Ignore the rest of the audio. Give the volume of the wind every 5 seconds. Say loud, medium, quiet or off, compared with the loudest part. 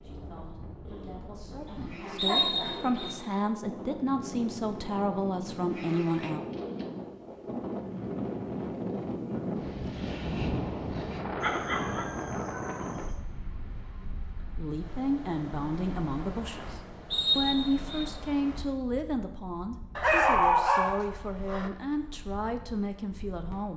medium, loud, loud, medium, quiet.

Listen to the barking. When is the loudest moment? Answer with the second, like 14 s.
20 s.